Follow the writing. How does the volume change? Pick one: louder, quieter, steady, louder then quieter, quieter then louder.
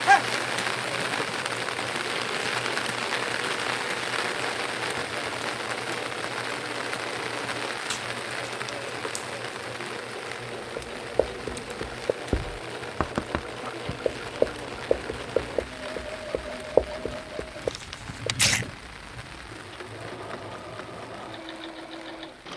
louder then quieter.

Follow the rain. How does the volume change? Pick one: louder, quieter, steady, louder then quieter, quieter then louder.
quieter.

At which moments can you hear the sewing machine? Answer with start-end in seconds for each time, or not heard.
0.0-22.5.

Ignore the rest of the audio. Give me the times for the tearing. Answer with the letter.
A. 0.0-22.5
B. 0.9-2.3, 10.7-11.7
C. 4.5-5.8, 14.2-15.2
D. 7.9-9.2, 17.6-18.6
D.